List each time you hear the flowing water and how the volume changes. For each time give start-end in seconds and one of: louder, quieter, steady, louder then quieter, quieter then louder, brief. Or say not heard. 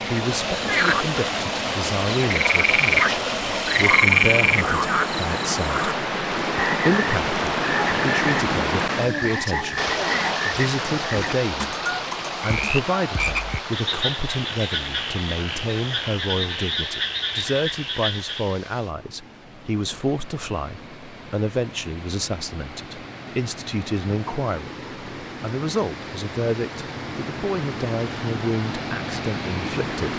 0.0-30.1 quieter then louder.